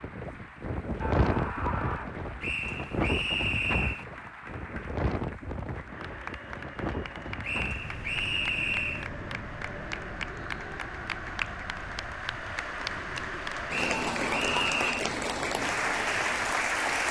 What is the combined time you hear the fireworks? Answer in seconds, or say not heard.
not heard.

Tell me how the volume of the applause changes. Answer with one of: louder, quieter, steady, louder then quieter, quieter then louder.
louder.